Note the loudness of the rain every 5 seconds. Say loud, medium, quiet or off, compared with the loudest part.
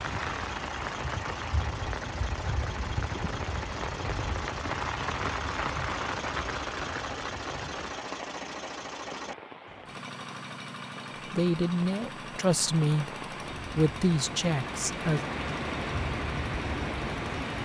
loud, loud, medium, loud.